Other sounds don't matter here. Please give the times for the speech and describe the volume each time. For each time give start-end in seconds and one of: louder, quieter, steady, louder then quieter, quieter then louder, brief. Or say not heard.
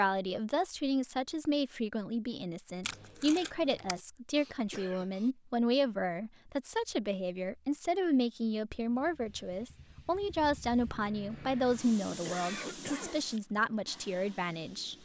0.0-14.9 steady.